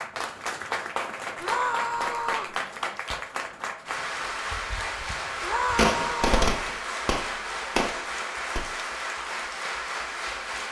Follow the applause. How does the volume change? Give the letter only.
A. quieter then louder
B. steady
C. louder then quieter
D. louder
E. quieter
B.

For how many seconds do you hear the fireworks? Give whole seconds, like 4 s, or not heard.
4 s.